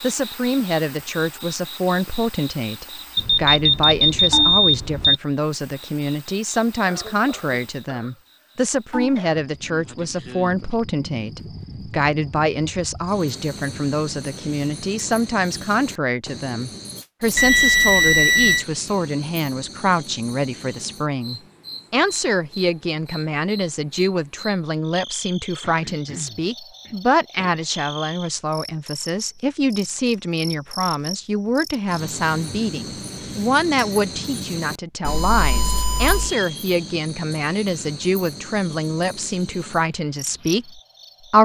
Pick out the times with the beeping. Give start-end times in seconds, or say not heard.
3.1-5.2, 17.4-18.6, 35.0-36.3.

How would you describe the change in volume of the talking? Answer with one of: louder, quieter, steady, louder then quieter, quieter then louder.
steady.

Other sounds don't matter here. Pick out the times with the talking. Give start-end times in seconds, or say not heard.
0.0-41.3.